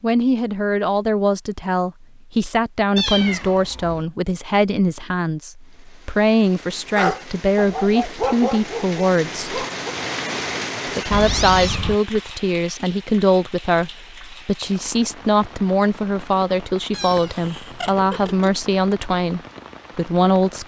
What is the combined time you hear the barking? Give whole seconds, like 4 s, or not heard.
3 s.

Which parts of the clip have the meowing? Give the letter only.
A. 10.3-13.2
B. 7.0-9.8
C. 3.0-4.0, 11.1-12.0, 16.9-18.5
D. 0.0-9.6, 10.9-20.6
C.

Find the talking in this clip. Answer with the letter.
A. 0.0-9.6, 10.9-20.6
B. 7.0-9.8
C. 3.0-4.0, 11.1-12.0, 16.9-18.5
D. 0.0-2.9
A.